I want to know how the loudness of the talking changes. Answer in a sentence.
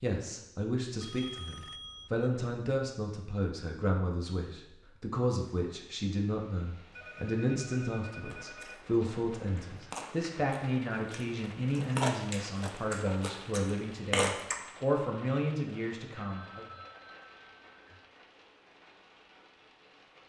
The loudness of the talking stays about the same.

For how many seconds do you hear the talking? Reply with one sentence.
You can hear the talking for 17 seconds altogether.